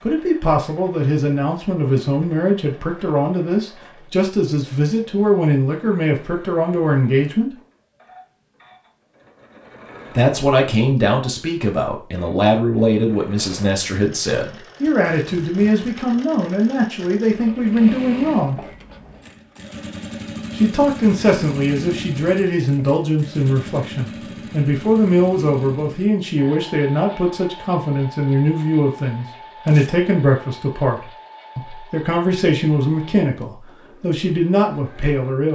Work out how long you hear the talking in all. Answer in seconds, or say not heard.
31 s.